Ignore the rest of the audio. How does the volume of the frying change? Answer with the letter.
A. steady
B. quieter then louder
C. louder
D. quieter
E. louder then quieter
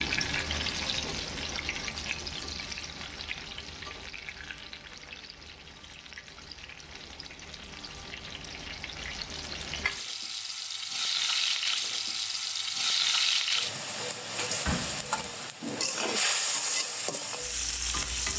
B.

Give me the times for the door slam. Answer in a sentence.
The door slam can be heard from 14.7 to 15.3 s.